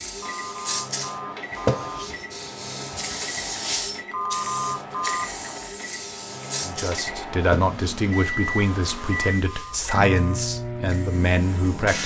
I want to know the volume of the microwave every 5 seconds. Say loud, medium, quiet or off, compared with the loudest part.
medium, loud, loud.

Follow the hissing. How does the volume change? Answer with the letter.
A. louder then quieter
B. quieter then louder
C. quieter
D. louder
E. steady
C.